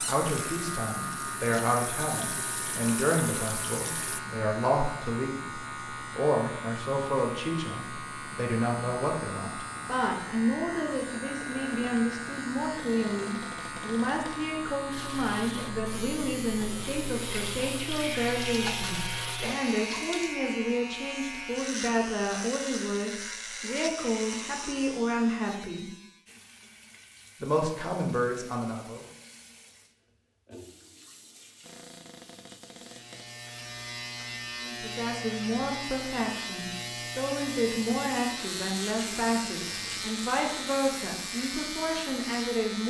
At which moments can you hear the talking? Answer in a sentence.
The talking can be heard from 0.0 to 25.9 s, from 27.4 to 29.1 s and from 34.6 to 42.8 s.